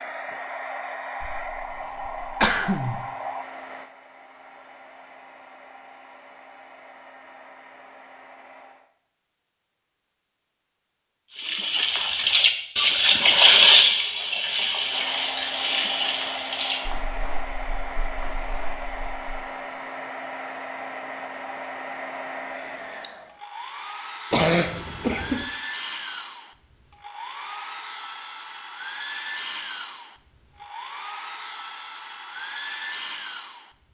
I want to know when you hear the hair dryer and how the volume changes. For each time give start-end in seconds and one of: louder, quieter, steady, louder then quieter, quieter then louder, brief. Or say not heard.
0.0-8.9 quieter
14.8-33.8 steady.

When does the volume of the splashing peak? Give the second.
14 s.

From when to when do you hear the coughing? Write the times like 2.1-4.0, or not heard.
1.2-3.0, 24.3-25.4.